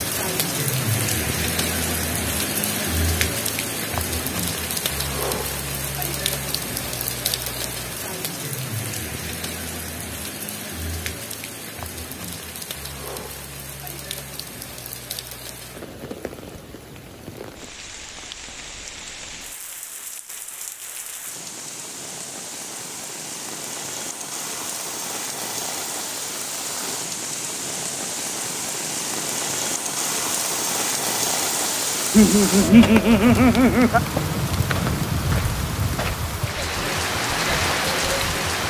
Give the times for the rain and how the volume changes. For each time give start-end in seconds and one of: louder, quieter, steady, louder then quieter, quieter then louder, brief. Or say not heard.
0.0-38.6 quieter then louder.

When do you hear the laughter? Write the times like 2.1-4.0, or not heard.
32.1-34.0.